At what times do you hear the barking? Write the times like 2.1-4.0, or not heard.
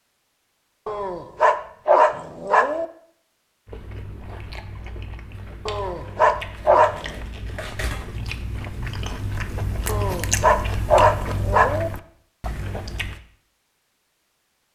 0.8-2.9, 5.7-7.2, 9.8-11.9.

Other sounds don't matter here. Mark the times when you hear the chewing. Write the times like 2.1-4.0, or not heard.
3.6-13.2.